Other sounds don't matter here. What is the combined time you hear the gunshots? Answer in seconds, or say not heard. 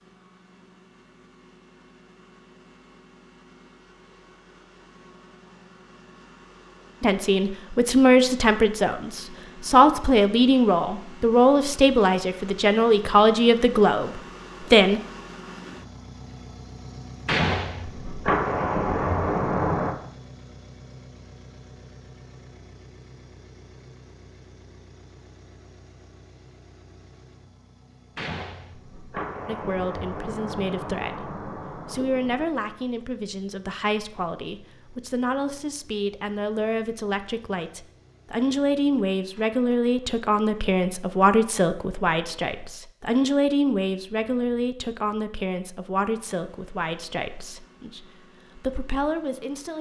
7 s.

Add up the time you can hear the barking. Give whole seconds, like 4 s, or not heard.
not heard.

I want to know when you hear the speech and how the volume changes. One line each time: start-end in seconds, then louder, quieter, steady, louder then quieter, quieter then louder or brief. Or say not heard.
7.0-15.0 steady
29.4-49.7 louder then quieter.